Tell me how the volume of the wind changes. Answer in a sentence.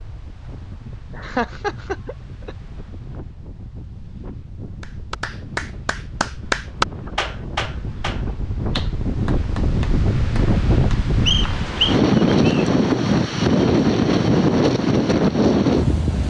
The volume of the wind goes up.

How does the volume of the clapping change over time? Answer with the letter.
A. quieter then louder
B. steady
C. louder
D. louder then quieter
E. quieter
D.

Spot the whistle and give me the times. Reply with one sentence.
You can hear the whistle from 11.2 to 12.7 s.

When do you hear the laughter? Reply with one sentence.
You can hear the laughter from 1.1 to 2.5 s.